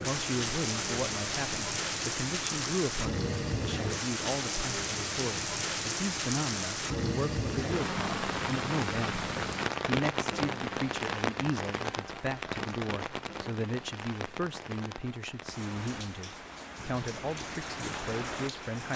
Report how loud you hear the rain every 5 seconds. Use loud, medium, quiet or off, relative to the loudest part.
loud, loud, loud, medium.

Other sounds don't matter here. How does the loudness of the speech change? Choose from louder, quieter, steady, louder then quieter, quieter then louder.
steady.